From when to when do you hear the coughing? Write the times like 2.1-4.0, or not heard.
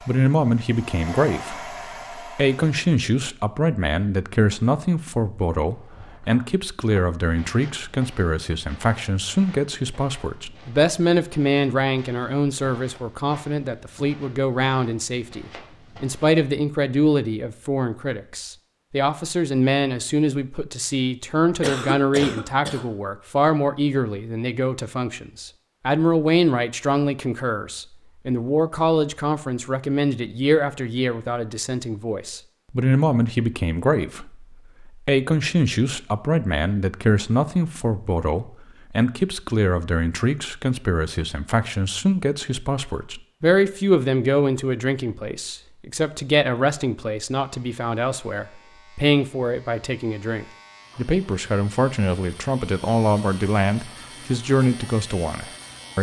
21.6-22.9.